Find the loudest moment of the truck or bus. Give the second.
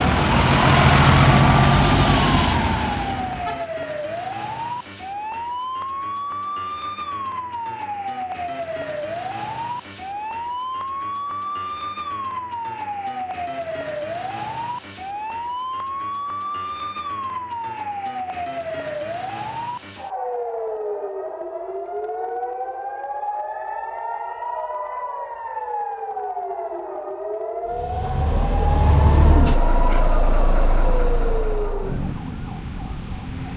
1 s.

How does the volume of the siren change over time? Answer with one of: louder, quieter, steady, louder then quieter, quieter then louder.
steady.